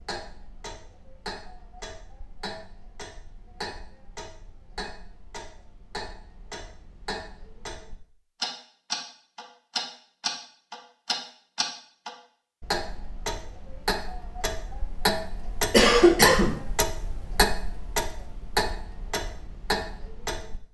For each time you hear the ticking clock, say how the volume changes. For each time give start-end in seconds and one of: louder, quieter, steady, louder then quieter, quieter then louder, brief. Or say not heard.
0.0-20.6 louder.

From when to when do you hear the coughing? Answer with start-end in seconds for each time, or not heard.
15.7-16.6.